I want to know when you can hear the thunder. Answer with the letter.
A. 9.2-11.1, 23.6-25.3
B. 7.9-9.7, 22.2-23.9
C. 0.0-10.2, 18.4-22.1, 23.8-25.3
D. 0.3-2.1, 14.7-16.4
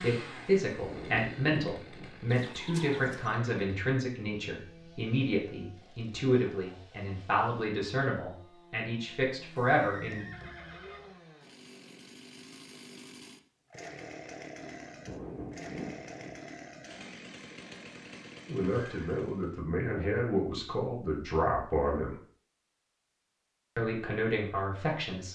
D.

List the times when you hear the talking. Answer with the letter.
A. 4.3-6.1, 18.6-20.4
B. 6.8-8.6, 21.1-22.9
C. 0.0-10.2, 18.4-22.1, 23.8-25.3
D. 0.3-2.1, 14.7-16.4
C.